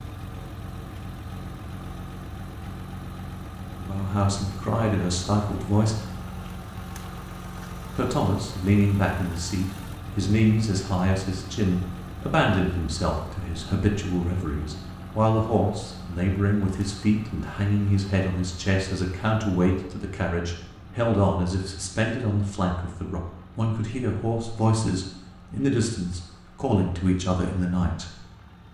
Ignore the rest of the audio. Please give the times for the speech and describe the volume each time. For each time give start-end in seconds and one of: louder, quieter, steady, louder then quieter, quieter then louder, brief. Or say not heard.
3.8-6.0 brief
8.0-28.1 steady.